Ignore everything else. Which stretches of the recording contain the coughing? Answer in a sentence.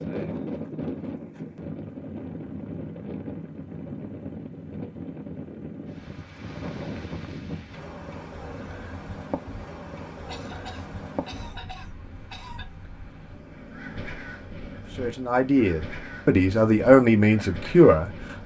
You can hear the coughing from 10.2 to 12.7 s.